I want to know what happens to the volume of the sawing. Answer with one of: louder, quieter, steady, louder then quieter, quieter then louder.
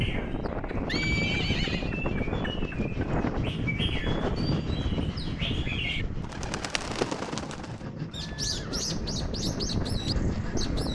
steady.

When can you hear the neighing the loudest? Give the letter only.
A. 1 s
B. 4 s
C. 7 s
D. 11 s
A.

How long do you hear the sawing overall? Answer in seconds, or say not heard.
10 s.